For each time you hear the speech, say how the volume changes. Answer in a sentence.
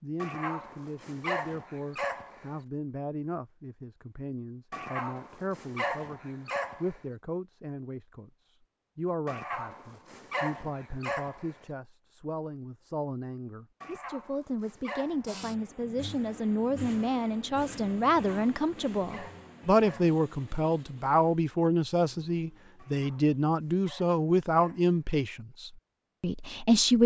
The speech can be heard from 0.0 to 27.0 s, getting louder.